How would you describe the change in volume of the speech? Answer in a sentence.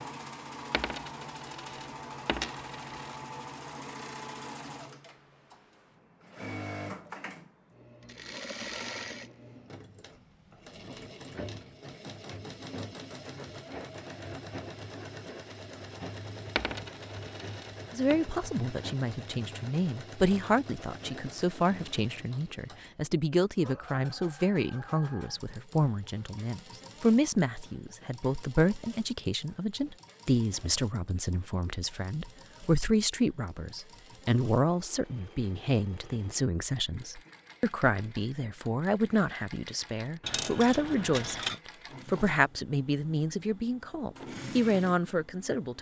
The loudness of the speech stays about the same.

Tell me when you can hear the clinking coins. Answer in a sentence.
The clinking coins can be heard from 0.7 to 3.2 s, from 16.6 to 18.2 s and from 40.2 to 41.6 s.